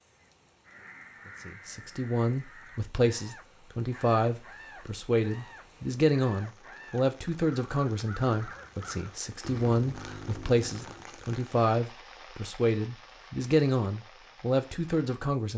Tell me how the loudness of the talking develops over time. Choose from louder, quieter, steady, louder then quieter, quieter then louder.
steady.